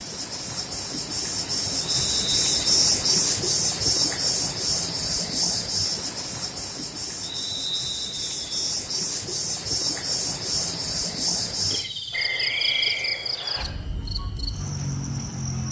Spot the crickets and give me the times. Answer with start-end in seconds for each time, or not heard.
0.0-15.6.